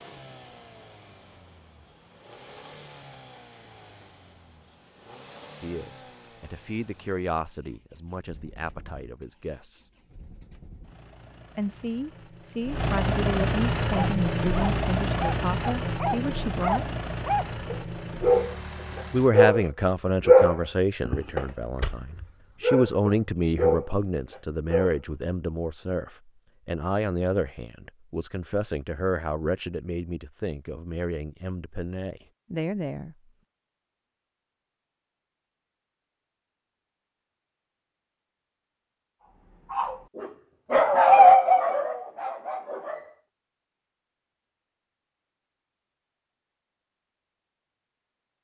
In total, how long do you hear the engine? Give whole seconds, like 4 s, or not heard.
19 s.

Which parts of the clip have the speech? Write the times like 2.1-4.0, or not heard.
5.6-9.8, 11.6-16.9, 19.1-33.1.